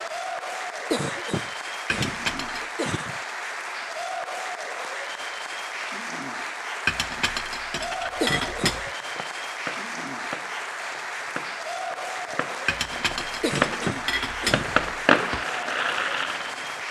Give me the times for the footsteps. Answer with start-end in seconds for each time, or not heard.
not heard.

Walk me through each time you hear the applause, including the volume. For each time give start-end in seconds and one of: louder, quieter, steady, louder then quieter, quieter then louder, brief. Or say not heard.
0.0-16.8 steady.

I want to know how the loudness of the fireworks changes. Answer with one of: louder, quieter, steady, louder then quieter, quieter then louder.
quieter then louder.